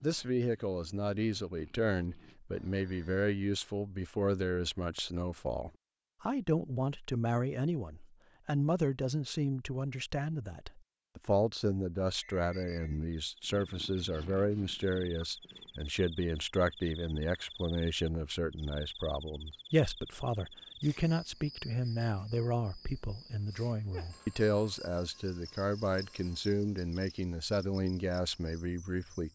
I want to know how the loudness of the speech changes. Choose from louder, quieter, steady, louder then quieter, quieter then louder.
steady.